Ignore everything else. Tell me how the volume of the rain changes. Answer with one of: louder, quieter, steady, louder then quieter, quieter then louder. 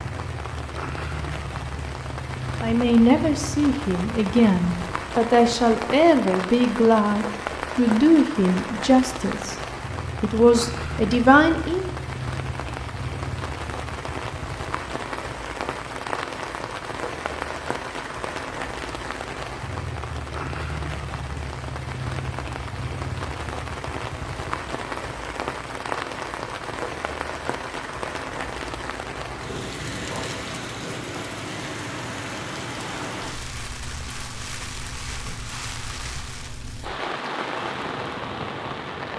steady.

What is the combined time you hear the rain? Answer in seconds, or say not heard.
39 s.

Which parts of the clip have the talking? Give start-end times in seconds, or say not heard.
2.6-9.6, 10.2-11.9.